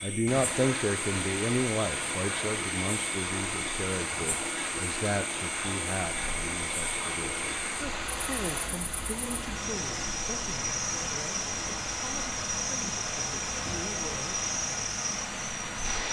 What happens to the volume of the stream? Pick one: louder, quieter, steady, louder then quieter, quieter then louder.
steady.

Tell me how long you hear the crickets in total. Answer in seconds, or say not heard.
16 s.